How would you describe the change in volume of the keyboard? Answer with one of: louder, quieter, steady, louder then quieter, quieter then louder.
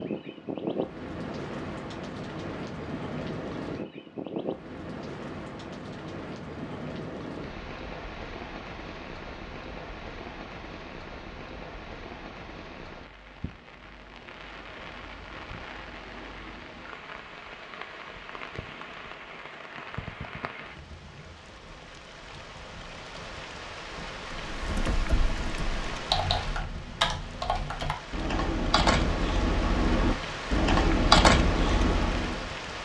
louder.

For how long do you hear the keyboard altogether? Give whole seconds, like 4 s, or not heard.
8 s.